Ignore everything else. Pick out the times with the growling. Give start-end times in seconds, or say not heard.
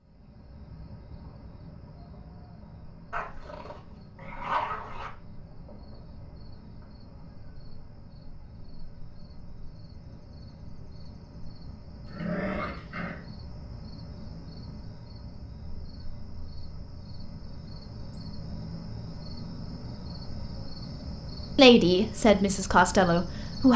3.1-5.1, 12.1-13.2.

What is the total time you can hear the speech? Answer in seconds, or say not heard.
2 s.